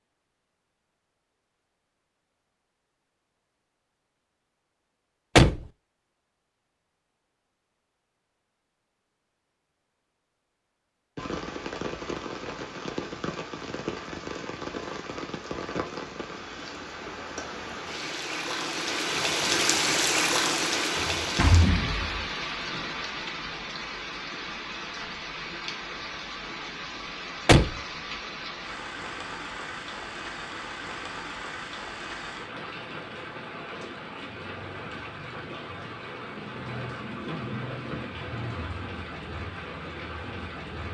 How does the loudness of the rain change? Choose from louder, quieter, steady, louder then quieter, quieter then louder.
louder then quieter.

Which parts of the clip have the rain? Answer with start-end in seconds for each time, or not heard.
11.2-40.8.